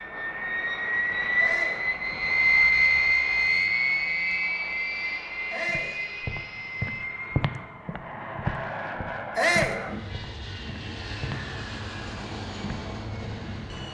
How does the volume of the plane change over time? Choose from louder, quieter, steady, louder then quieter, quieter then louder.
quieter.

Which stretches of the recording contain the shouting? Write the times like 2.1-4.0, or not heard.
1.4-1.9, 5.5-6.0, 9.3-9.8.